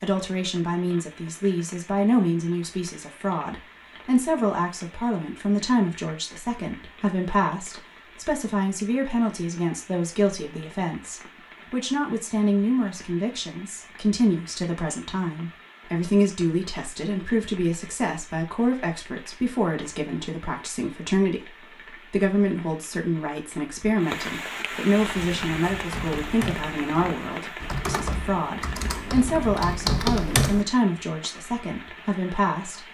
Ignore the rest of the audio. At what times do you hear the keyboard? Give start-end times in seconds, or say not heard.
25.1-30.6.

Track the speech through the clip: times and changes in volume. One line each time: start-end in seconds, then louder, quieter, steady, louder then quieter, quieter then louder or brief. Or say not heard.
0.0-32.8 steady.